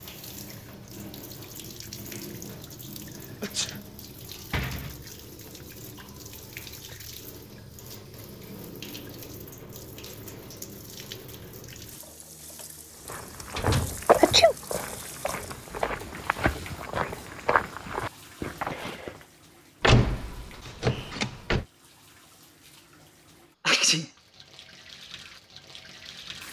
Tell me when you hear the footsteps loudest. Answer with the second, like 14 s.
14 s.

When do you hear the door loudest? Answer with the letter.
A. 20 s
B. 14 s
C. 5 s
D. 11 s
A.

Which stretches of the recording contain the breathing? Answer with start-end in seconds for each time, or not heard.
not heard.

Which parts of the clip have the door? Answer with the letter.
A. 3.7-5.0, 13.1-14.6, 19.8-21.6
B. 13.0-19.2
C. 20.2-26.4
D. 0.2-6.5
A.